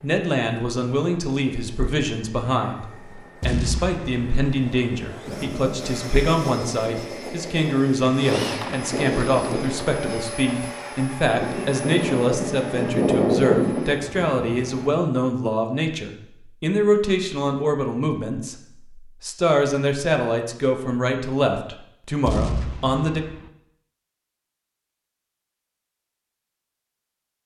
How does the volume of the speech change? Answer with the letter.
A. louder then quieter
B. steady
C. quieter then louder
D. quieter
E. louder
B.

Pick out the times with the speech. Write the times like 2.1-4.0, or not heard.
0.0-23.2.